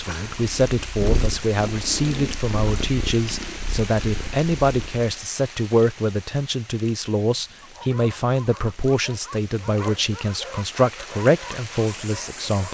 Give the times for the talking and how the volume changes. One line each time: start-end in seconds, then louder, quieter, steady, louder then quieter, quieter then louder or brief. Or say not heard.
0.0-12.6 steady.